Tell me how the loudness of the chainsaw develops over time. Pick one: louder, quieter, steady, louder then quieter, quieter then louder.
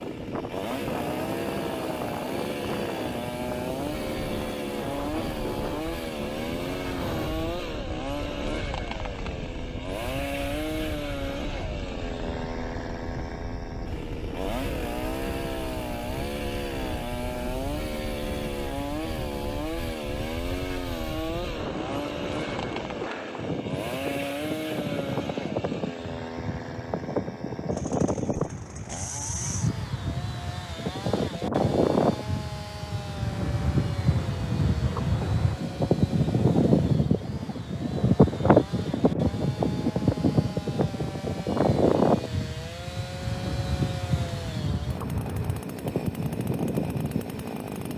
quieter.